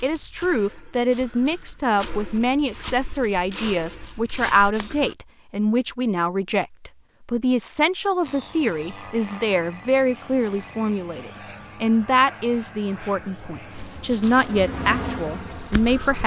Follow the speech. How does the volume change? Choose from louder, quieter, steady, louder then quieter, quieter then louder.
steady.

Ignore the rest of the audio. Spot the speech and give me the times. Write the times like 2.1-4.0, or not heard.
0.0-16.2.